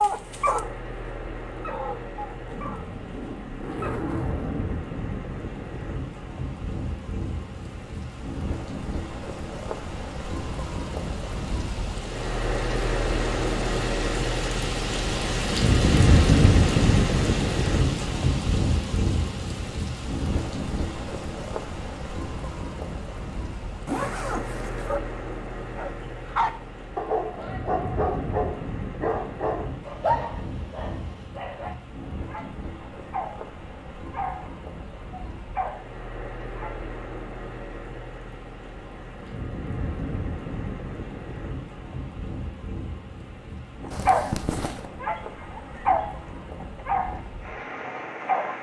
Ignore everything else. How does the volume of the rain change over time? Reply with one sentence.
The volume of the rain goes up, then down.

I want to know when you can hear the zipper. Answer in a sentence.
The zipper can be heard from 2.5 to 4.9 s, from 23.9 to 25.0 s and from 43.9 to 44.9 s.